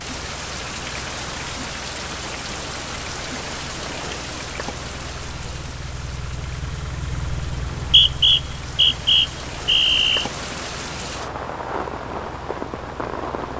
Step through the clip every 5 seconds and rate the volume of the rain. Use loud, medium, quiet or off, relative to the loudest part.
loud, medium, loud.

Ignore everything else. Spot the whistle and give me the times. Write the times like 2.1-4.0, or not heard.
7.7-10.3.